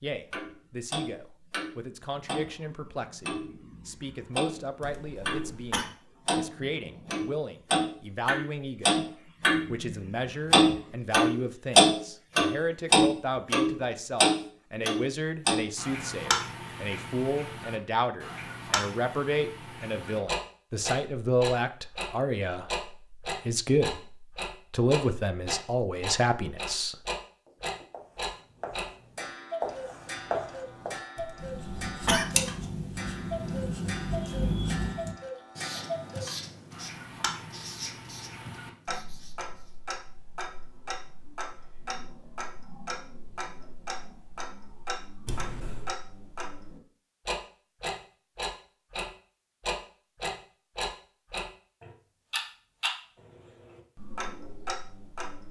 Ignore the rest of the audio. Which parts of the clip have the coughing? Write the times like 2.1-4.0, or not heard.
4.8-5.8, 31.1-32.2, 45.2-45.9.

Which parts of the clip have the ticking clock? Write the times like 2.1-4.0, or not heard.
0.3-5.5, 6.2-55.4.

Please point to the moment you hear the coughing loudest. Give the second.
32 s.